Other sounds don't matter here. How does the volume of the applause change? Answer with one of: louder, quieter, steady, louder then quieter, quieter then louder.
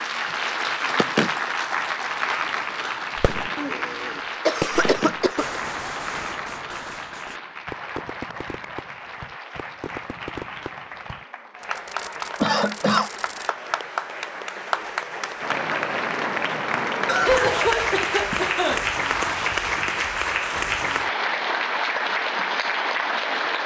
quieter then louder.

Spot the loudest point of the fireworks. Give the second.
5 s.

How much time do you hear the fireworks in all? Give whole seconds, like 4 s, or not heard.
10 s.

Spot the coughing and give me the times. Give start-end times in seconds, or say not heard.
3.5-5.6, 12.4-13.1, 17.1-18.9.